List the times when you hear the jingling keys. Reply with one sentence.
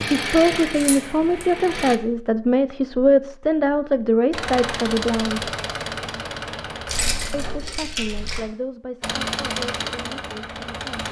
You can hear the jingling keys from 0.7 to 1.4 s and from 6.8 to 8.4 s.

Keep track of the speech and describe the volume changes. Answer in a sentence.
The volume of the speech goes down.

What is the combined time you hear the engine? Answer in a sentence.
The engine can be heard for 7 seconds in total.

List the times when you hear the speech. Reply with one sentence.
The speech can be heard from 0.1 to 5.5 s and from 7.3 to 11.0 s.